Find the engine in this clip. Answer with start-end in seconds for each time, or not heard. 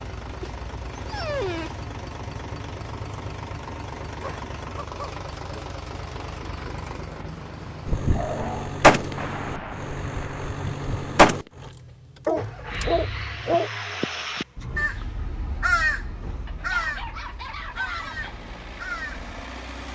0.0-19.9.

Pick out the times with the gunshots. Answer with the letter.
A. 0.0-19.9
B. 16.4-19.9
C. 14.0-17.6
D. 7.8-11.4
D.